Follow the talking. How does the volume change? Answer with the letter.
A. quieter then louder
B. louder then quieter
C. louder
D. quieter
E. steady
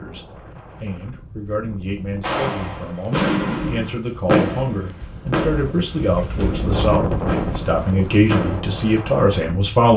C.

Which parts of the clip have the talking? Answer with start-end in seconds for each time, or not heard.
0.0-9.9.